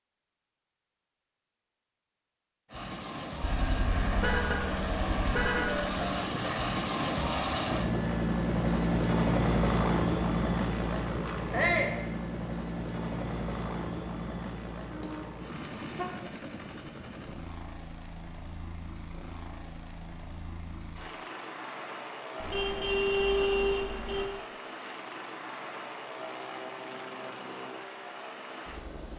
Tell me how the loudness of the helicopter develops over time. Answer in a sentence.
The volume of the helicopter goes down.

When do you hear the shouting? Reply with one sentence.
You can hear the shouting from 11.5 to 12.0 s.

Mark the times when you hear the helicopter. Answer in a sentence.
The helicopter can be heard from 2.7 to 29.1 s.